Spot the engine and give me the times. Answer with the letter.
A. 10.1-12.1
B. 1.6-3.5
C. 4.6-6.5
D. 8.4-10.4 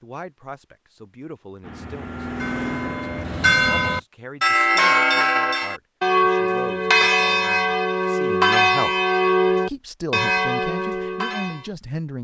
B.